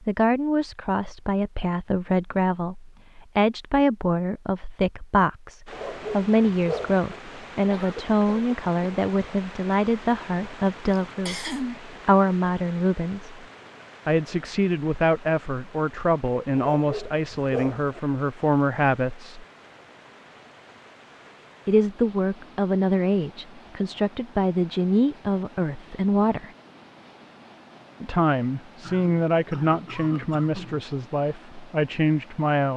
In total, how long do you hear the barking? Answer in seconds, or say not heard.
3 s.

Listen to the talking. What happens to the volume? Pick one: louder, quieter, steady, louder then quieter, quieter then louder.
steady.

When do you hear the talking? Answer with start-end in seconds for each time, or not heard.
0.0-13.4, 14.1-19.4, 21.6-26.5, 28.0-32.7.